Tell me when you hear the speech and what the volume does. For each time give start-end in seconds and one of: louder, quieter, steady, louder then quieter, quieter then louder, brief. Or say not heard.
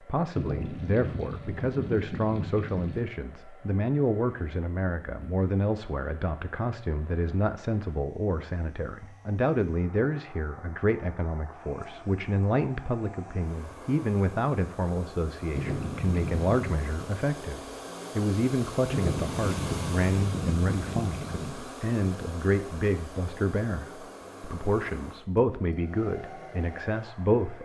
0.0-27.5 steady.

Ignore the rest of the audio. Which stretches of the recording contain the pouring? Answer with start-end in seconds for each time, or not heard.
0.3-3.0, 15.6-16.6, 18.9-21.6.